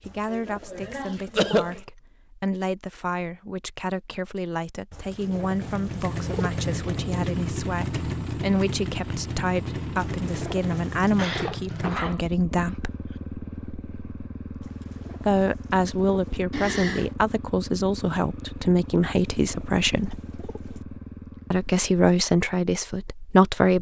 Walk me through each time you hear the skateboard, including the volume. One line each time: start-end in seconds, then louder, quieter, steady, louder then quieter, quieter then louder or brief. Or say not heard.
not heard.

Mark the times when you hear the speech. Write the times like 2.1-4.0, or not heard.
0.1-12.9, 15.2-20.2, 21.5-23.7.